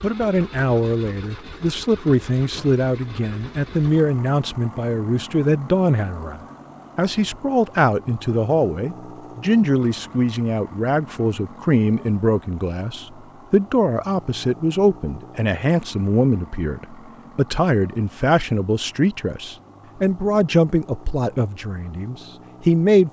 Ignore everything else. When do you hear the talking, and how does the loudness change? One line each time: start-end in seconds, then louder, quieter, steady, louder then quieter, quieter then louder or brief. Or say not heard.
0.0-23.0 steady.